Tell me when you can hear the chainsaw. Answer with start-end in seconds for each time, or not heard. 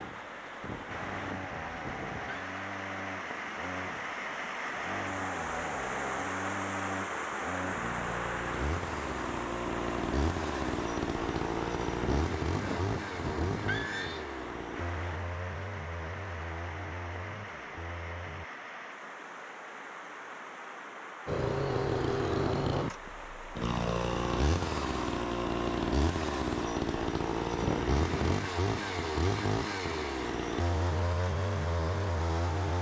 0.0-18.4, 21.2-32.7.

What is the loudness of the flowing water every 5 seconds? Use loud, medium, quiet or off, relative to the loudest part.
loud, loud, medium, medium, medium, medium, medium.